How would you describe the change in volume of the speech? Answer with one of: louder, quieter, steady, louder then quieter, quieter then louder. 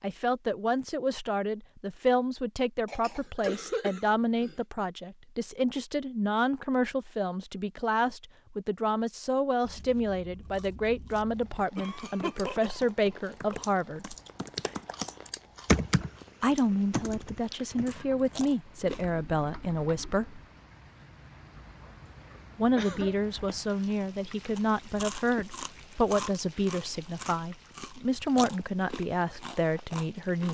steady.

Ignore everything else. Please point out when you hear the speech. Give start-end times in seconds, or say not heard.
0.0-14.2, 16.4-20.4, 22.6-30.4.